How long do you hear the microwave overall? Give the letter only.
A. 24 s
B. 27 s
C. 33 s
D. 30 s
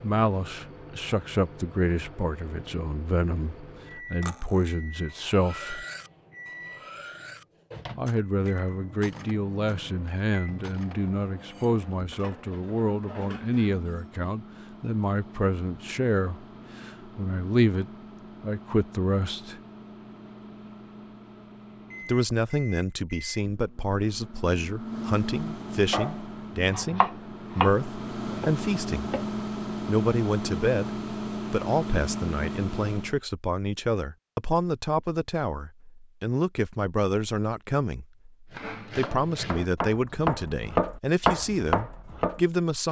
C.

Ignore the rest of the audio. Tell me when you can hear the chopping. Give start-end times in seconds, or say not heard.
25.9-29.4, 38.5-42.8.